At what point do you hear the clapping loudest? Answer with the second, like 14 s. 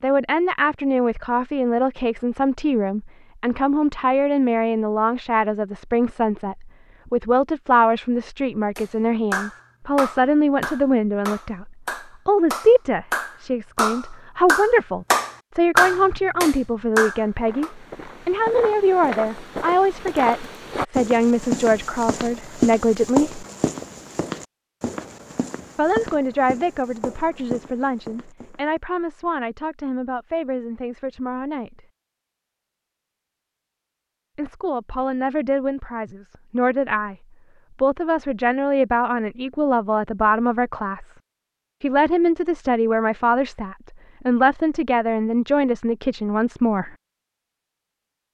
16 s.